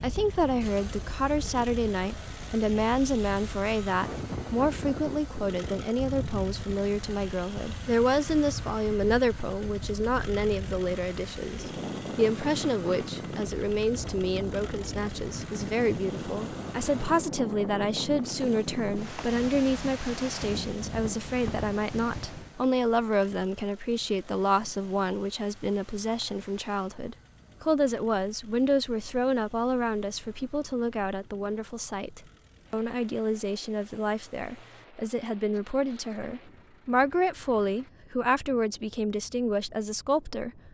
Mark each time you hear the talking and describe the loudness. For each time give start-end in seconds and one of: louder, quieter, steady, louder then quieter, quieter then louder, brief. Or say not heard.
0.0-40.6 steady.